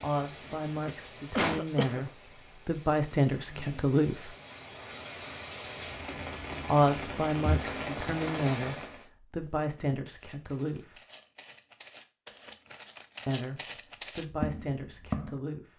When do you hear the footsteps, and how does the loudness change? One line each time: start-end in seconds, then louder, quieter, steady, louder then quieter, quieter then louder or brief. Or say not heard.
9.3-15.4 louder.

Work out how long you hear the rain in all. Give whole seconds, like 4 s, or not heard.
9 s.